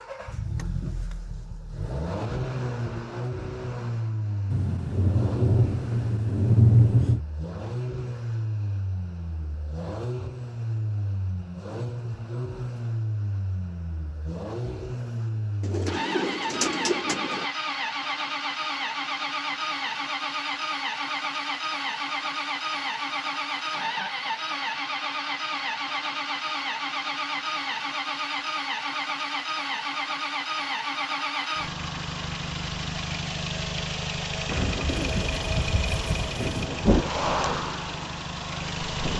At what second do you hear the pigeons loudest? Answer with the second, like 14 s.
17 s.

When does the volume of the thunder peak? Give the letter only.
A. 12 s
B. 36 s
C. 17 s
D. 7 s
D.